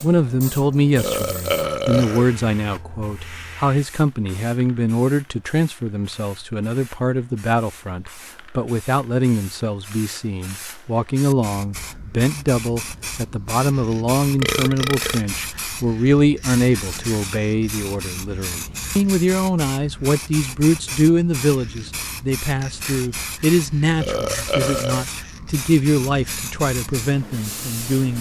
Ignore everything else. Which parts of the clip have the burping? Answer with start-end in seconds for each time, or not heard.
0.9-2.4, 14.3-15.2, 23.9-25.1.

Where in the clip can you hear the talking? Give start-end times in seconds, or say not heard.
0.0-28.1.